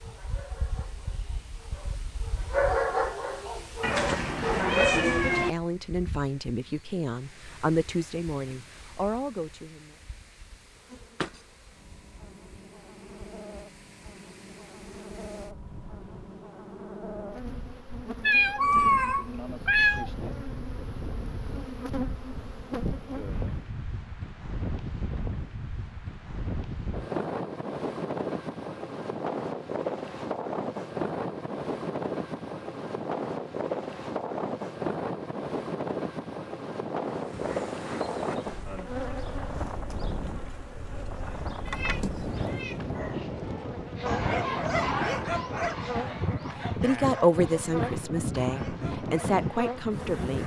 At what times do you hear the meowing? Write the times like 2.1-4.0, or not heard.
3.8-5.5, 18.2-20.1, 41.6-43.0.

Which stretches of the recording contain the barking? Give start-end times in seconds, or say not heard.
0.0-5.2, 42.9-50.4.